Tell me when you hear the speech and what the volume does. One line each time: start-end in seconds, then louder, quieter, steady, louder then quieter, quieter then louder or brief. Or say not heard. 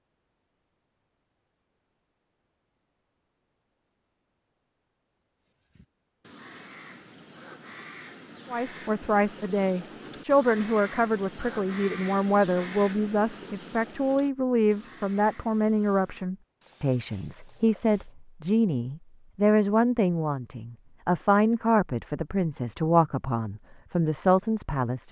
8.5-25.0 steady.